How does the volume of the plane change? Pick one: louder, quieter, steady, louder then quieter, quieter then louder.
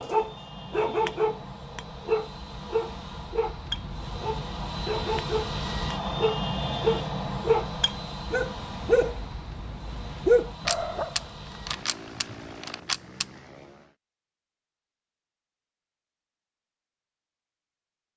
louder then quieter.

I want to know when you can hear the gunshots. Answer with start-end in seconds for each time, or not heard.
10.6-13.2.